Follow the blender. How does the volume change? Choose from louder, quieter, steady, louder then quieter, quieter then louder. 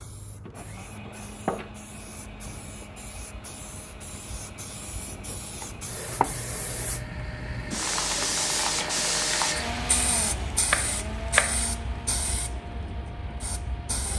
louder then quieter.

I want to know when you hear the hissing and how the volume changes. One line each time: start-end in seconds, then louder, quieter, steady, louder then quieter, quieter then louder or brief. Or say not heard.
0.0-14.1 louder then quieter.